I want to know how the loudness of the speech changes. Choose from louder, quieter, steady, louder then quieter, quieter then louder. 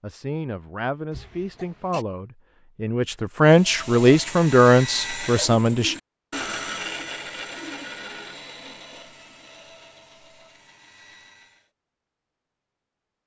louder.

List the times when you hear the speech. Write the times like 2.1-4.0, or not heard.
0.0-6.0.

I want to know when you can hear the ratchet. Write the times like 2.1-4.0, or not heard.
not heard.